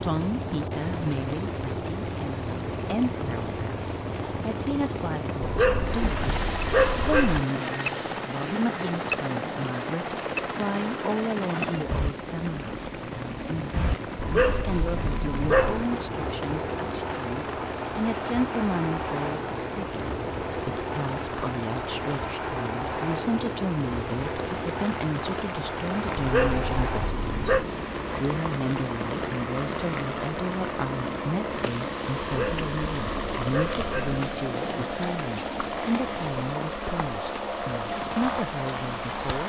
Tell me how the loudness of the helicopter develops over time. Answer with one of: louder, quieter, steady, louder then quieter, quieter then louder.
steady.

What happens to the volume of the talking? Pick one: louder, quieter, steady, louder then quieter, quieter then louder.
steady.